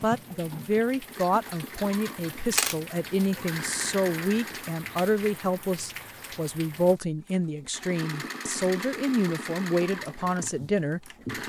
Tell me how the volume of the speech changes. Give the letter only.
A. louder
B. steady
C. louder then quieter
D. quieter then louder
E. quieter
B.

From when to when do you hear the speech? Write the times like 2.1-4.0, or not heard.
0.0-11.4.